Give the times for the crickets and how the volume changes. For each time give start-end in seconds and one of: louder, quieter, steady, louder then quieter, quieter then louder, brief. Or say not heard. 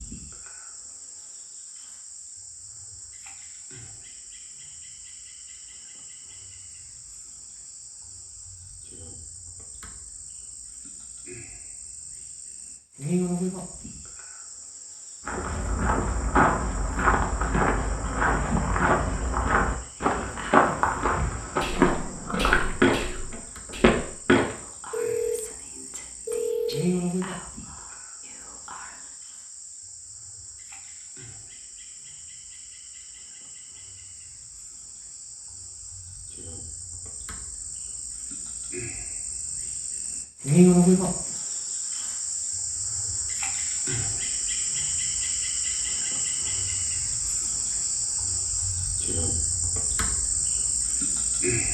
0.0-51.6 louder.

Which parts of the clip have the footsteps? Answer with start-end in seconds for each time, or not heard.
15.2-24.6.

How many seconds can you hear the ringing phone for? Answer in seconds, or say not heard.
2 s.